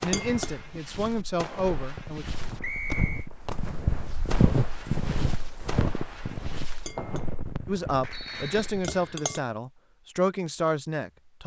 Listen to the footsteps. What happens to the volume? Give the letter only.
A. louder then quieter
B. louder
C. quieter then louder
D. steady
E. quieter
A.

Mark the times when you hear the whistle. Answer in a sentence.
You can hear the whistle from 2.6 to 3.2 s and from 8.1 to 9.2 s.